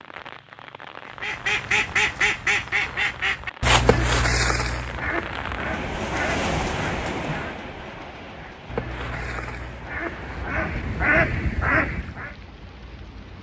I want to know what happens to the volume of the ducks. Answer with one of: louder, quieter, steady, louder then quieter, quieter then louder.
quieter then louder.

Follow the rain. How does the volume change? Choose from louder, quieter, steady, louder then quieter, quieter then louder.
louder then quieter.